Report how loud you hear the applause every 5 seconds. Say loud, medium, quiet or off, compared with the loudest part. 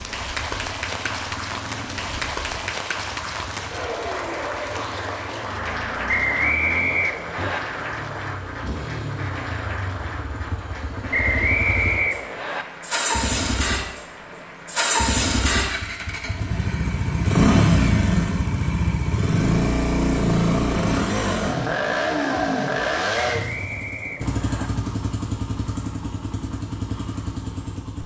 loud, loud, medium, off, off, off.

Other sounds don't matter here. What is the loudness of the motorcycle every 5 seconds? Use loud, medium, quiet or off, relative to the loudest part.
quiet, quiet, medium, loud, loud, medium.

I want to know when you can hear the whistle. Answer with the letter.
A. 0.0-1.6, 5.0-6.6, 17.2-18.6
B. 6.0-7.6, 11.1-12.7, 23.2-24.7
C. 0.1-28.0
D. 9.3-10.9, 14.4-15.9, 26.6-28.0
B.